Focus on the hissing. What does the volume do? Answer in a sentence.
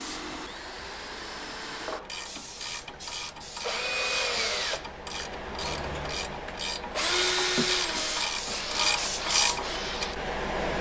The volume of the hissing goes up.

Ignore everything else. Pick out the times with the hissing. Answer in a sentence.
You can hear the hissing from 0.0 to 10.7 s.